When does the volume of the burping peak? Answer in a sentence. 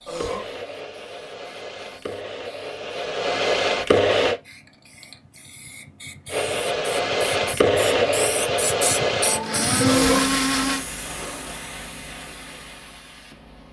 The loudest moment of the burping is at 10 seconds.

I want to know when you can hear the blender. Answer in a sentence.
You can hear the blender from 0.1 to 4.3 s and from 6.3 to 10.8 s.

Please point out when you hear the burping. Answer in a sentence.
The burping can be heard from 0.1 to 0.5 s and from 9.8 to 10.2 s.